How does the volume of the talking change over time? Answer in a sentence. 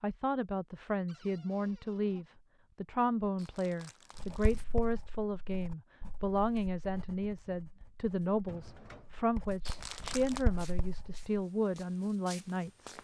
The loudness of the talking stays about the same.